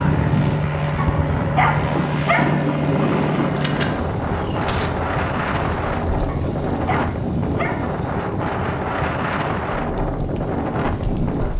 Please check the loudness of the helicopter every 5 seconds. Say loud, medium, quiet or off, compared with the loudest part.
loud, quiet, quiet.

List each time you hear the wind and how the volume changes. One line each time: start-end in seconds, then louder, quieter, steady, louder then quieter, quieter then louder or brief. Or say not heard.
0.0-11.5 steady.